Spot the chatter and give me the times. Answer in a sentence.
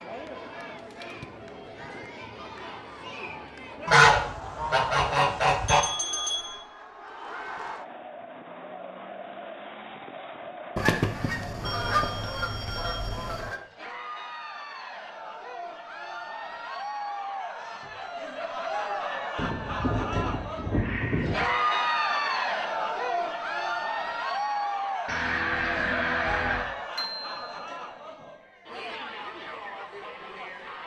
You can hear the chatter from 0.0 to 30.8 s.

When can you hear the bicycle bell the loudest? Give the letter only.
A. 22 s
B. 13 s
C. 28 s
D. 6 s
D.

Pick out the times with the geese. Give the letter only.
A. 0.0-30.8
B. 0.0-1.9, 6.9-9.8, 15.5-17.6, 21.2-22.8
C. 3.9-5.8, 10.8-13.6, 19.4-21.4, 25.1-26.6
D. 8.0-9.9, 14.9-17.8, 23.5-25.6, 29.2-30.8
C.